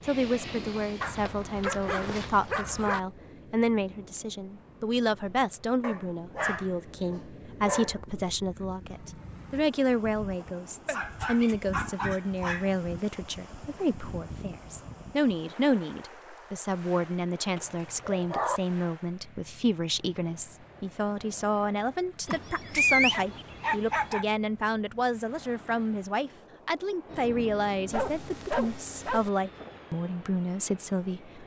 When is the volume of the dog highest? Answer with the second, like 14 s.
23 s.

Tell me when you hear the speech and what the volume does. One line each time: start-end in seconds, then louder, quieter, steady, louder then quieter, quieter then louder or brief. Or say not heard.
0.0-31.4 steady.